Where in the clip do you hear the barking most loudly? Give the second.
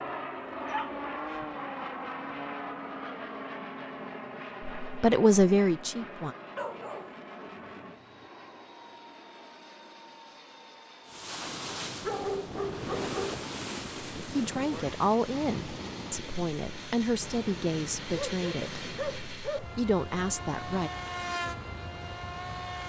12 s.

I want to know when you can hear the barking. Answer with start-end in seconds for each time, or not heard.
0.7-1.4, 6.5-8.1, 12.0-13.4, 18.1-19.7.